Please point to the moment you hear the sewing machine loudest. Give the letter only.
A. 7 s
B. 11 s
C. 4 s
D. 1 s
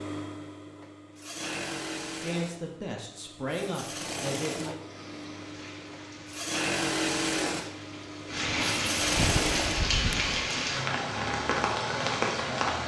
A.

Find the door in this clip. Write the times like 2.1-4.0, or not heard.
9.2-10.3.